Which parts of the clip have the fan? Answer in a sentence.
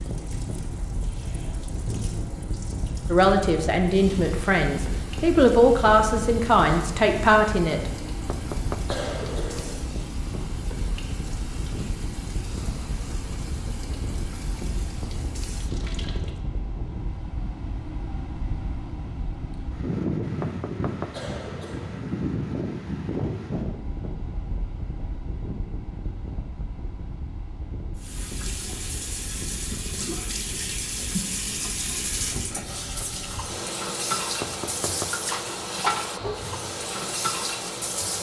You can hear the fan from 0.0 to 38.1 s.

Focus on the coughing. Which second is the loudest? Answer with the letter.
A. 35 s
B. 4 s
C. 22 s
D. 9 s
D.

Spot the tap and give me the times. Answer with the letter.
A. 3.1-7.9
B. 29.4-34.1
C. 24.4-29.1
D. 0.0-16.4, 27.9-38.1
D.